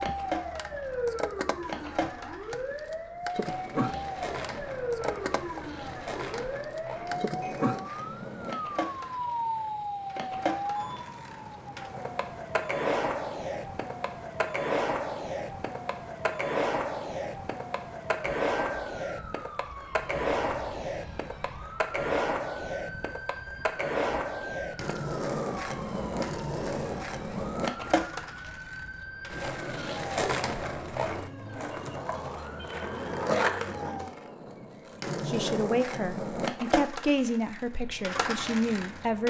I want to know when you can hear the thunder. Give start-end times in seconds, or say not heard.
not heard.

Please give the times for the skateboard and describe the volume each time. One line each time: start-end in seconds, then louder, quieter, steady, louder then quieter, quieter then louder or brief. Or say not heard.
0.0-39.2 louder.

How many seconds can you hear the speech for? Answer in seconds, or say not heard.
4 s.